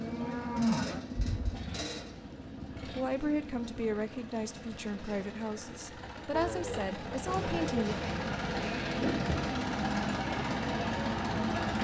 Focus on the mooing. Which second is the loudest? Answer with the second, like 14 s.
1 s.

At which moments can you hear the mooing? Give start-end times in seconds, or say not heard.
0.0-1.6, 6.3-11.4.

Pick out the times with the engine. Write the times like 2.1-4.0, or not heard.
0.0-11.7.